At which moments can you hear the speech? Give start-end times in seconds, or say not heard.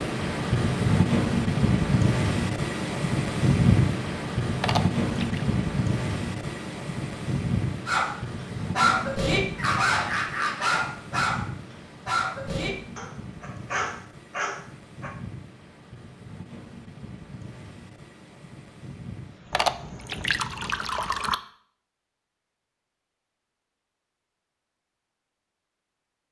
not heard.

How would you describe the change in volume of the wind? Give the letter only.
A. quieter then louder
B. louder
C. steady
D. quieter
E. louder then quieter
D.